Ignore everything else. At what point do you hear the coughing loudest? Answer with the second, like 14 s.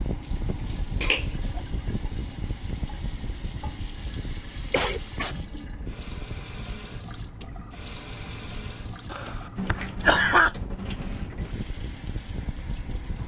10 s.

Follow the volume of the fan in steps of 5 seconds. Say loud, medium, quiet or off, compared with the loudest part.
loud, medium, loud.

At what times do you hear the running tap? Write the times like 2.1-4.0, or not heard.
0.0-13.2.